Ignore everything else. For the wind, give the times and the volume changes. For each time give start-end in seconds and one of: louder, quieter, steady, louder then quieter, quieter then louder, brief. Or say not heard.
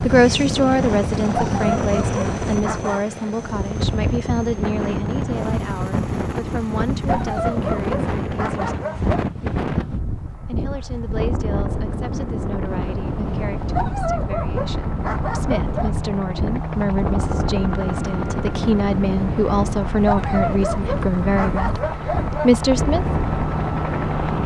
0.0-24.4 steady.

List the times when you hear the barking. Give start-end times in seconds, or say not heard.
1.4-3.0, 7.0-9.2, 13.7-15.9, 20.1-22.6.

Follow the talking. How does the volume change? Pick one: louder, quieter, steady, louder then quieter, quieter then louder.
quieter then louder.